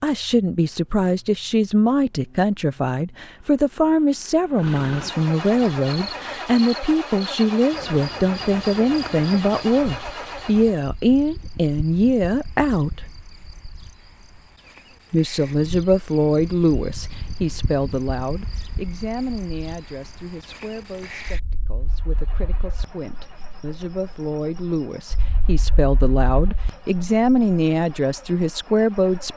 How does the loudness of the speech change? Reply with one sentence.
The volume of the speech goes down, then up.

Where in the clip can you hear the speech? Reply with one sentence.
The speech can be heard from 0.0 to 13.1 s and from 15.1 to 29.3 s.